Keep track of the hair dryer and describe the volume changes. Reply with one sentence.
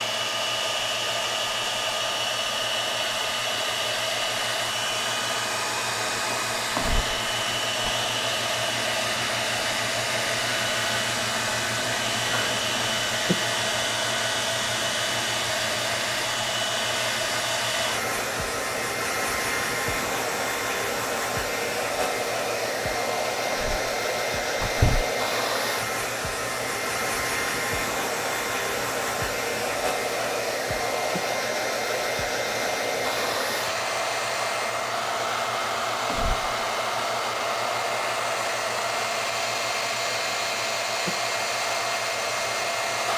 The volume of the hair dryer stays about the same.